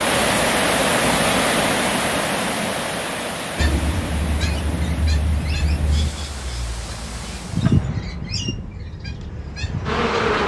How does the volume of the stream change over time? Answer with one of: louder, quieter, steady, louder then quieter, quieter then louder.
quieter.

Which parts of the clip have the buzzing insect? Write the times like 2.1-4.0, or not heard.
7.5-10.4.